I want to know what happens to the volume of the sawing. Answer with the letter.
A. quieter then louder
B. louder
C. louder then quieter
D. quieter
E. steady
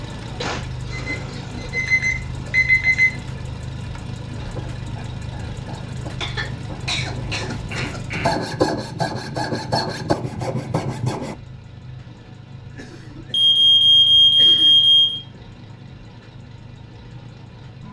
B.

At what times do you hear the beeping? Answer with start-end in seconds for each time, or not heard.
0.9-3.1, 13.3-15.2.